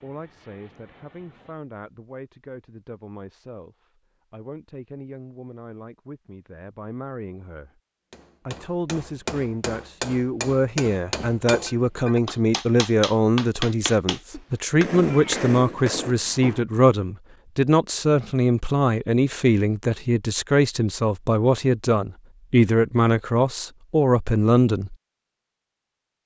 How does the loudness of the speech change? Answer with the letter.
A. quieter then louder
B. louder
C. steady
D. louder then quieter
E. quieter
B.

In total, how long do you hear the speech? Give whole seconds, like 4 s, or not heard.
24 s.